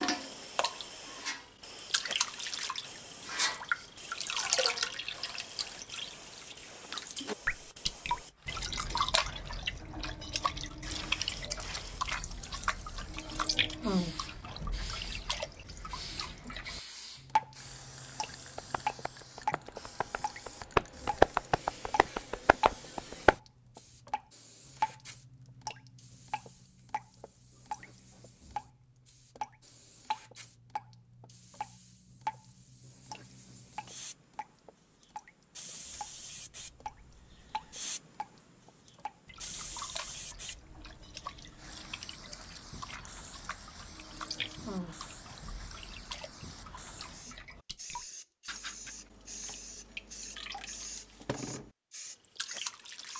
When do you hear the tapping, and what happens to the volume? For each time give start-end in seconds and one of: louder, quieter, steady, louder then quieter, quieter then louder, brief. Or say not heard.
18.6-23.4 louder then quieter.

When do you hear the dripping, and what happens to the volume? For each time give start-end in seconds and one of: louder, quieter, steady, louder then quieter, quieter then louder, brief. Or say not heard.
0.0-53.1 quieter.